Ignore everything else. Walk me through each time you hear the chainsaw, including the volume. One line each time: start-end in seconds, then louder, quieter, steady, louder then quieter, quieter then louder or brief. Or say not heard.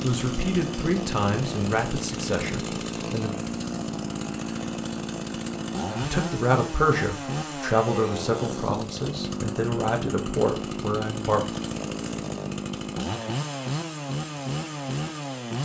0.0-15.5 steady.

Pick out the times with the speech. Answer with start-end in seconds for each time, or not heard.
0.0-3.4, 6.0-11.4.